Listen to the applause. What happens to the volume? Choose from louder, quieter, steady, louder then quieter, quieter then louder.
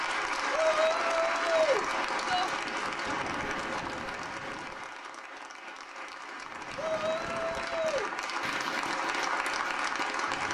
quieter then louder.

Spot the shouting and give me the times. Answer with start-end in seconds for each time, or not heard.
0.5-2.5, 6.8-8.1.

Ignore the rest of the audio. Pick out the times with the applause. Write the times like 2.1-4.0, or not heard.
0.0-10.4.